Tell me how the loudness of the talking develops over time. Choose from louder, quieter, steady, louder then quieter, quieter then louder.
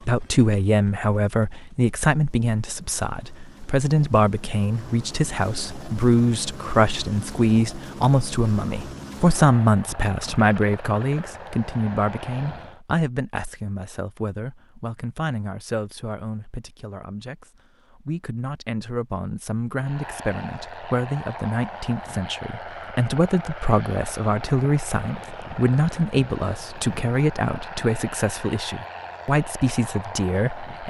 quieter then louder.